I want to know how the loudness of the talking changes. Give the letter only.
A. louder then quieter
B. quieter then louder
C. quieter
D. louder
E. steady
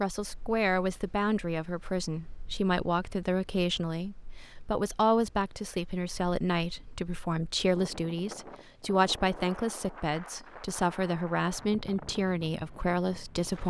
E.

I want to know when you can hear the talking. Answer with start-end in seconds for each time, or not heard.
0.0-13.6.